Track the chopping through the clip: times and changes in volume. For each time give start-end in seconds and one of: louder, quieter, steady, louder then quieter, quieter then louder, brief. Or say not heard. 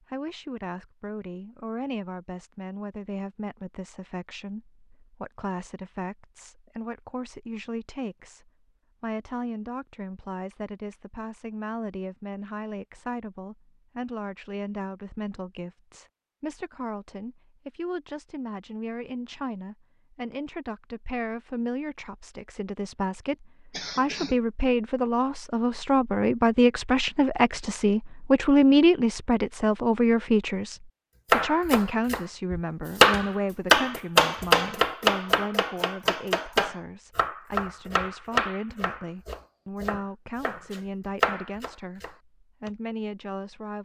31.3-42.7 quieter.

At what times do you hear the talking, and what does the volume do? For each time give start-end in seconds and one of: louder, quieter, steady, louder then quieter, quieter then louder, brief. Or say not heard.
0.0-43.8 louder then quieter.